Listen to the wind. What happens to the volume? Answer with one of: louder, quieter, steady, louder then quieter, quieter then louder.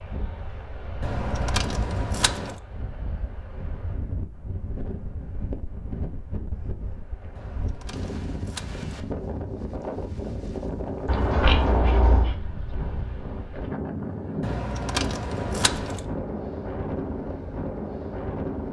louder.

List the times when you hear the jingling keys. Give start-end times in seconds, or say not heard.
1.0-2.6, 7.3-8.8, 14.4-16.1.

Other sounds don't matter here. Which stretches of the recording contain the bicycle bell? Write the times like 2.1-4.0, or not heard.
11.1-12.3.